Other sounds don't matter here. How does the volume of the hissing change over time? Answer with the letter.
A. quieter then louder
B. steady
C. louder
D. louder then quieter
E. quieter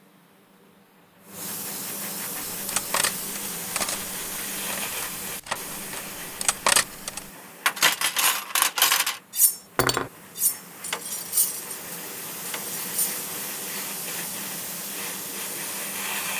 A.